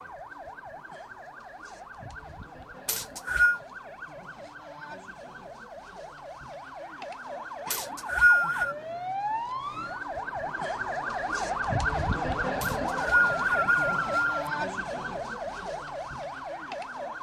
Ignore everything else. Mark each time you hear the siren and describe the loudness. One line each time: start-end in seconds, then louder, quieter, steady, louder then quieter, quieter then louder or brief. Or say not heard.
0.0-17.1 louder.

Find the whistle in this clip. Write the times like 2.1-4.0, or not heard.
2.9-3.6, 7.7-8.8, 12.6-14.5.